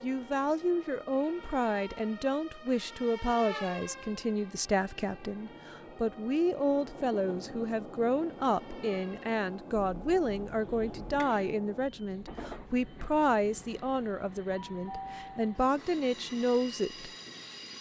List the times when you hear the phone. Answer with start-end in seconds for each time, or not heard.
not heard.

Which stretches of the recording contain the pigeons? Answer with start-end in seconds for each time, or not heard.
not heard.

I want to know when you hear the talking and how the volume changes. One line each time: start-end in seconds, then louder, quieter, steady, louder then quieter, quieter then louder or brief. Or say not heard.
0.0-17.1 steady.